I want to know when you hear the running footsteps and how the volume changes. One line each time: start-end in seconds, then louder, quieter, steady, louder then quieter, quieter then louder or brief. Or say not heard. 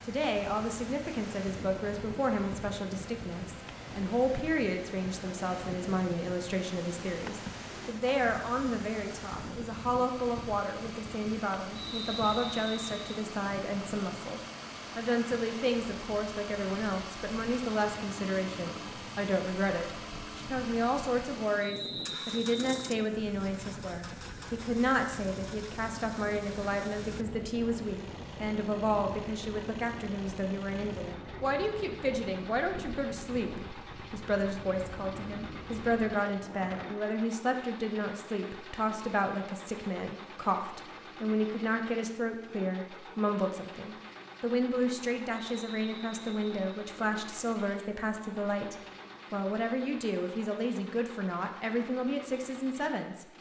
not heard.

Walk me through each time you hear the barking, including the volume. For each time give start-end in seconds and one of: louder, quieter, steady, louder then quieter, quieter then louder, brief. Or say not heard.
not heard.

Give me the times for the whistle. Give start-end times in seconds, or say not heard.
11.8-13.1, 21.6-23.1, 45.5-46.6.